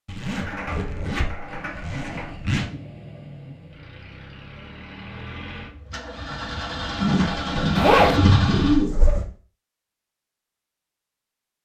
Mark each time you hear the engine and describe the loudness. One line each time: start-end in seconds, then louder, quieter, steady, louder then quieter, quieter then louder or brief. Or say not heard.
1.4-8.8 louder.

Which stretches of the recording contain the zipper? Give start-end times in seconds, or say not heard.
0.1-2.7, 7.8-8.2.